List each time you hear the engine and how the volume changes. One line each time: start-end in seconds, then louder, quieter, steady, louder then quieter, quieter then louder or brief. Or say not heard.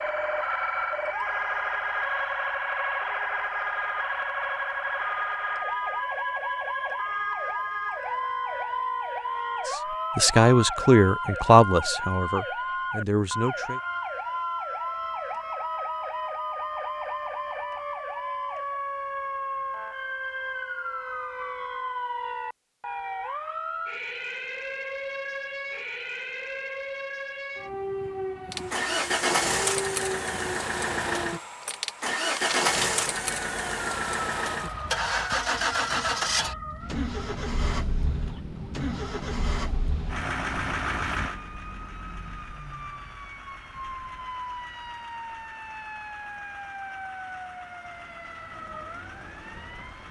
28.5-50.0 quieter.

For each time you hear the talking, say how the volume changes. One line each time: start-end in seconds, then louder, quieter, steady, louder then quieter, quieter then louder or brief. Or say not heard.
9.7-13.8 quieter.